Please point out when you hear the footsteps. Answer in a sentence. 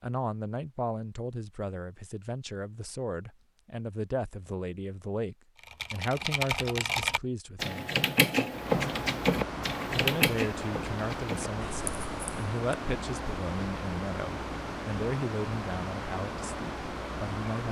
You can't hear the footsteps here.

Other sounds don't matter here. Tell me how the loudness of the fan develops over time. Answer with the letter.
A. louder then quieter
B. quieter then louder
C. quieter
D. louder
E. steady
E.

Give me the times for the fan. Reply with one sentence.
You can hear the fan from 8.4 to 17.6 s.